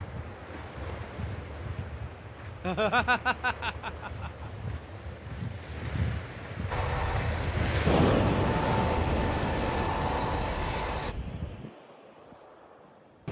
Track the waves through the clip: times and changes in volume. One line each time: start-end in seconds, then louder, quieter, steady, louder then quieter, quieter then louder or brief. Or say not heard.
0.0-13.2 louder then quieter.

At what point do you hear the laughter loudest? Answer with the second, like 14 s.
3 s.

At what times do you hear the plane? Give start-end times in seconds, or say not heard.
6.7-11.2.